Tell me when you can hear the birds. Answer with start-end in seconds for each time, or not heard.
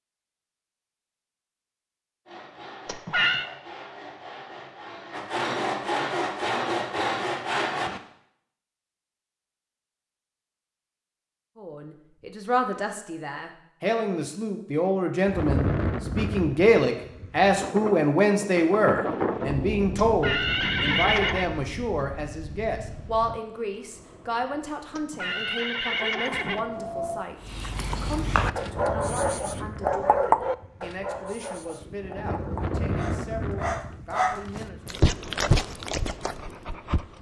not heard.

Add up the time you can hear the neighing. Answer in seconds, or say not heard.
4 s.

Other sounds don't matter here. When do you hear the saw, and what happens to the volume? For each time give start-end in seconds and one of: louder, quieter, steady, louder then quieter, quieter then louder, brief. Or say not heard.
2.2-8.0 louder.